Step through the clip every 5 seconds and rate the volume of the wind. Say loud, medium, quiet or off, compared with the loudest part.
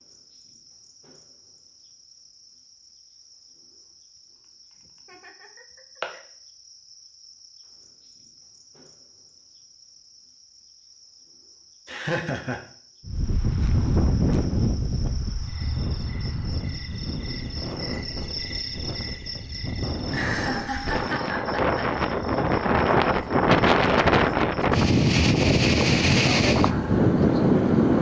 off, off, medium, quiet, loud, loud.